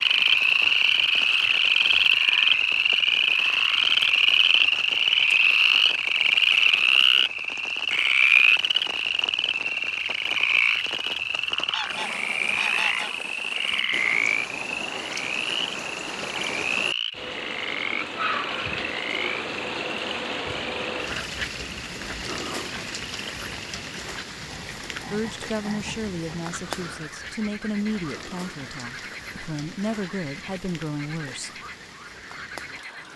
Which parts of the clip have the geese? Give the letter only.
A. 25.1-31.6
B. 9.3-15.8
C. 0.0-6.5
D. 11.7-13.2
D.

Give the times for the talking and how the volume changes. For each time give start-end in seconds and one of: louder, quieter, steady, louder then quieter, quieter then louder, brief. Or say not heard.
25.1-31.6 steady.